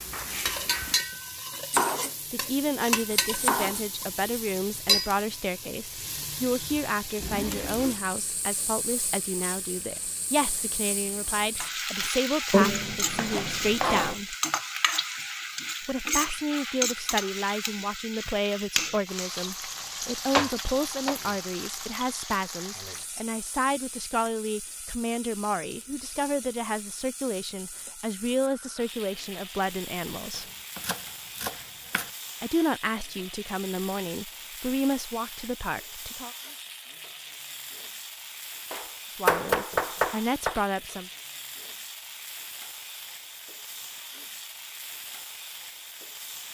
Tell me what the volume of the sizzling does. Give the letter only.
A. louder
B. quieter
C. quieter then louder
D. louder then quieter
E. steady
B.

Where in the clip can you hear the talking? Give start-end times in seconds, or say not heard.
2.3-14.3, 15.8-30.4, 32.4-36.3, 39.1-41.1.